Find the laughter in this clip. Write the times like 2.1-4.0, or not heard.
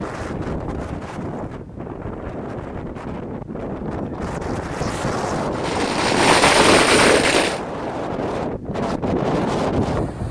not heard.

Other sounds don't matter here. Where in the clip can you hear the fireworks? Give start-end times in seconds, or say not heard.
5.5-7.6.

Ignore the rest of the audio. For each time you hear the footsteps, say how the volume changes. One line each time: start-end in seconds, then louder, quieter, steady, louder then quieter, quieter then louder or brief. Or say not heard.
not heard.